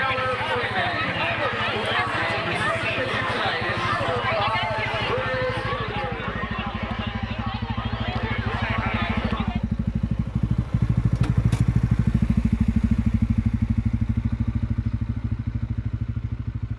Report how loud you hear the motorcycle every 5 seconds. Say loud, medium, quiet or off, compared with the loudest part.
quiet, medium, loud, medium.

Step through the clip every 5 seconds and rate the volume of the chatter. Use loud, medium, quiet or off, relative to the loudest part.
loud, medium, off, off.